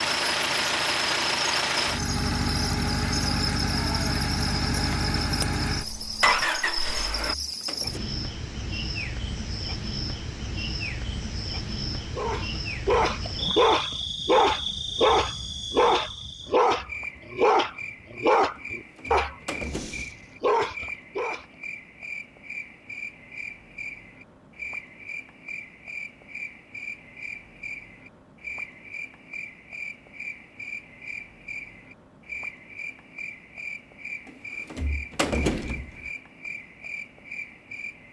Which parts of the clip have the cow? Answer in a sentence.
You can't hear the cow here.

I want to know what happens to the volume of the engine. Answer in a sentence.
The loudness of the engine stays about the same.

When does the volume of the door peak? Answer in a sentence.
The volume of the door peaks at 35 seconds.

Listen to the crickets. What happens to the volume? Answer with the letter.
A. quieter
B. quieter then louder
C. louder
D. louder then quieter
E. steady
A.